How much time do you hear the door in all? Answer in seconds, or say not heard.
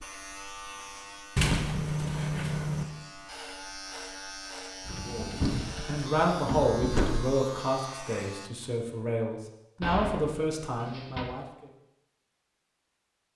5 s.